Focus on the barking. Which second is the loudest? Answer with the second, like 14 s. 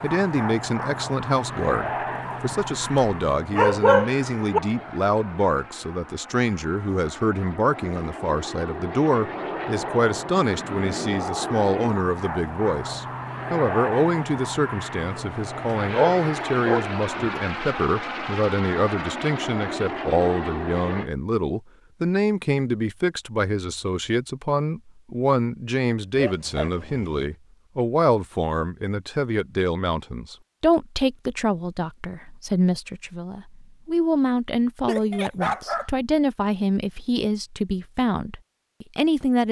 4 s.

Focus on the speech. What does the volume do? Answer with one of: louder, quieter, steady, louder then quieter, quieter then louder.
steady.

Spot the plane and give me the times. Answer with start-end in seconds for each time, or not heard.
0.0-21.1.